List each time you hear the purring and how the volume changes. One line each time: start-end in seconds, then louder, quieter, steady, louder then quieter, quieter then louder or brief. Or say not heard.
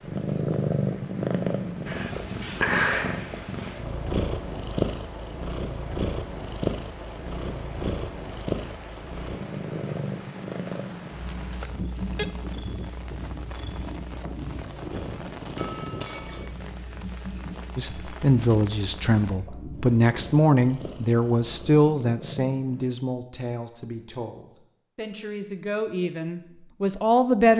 0.0-22.9 quieter.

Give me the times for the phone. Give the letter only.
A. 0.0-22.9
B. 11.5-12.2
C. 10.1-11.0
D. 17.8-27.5
B.